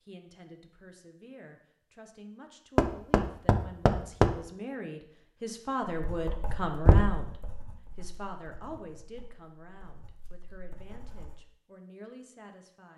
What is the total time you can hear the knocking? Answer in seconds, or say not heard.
2 s.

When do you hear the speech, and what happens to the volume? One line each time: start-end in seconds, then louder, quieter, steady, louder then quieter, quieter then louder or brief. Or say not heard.
0.0-12.9 louder then quieter.